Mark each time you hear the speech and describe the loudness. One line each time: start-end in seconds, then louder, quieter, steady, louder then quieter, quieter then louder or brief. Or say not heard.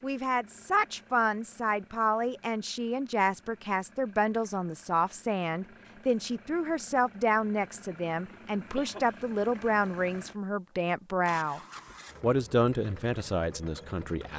0.0-11.6 steady
12.2-14.3 brief.